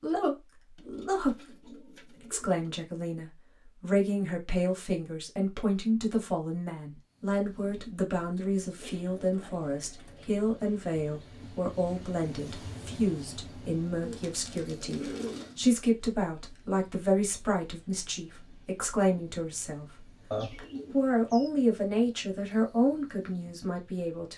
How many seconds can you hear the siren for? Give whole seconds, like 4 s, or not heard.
not heard.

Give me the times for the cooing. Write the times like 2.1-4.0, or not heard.
0.8-2.8, 8.8-10.4, 14.0-15.6, 20.3-21.5.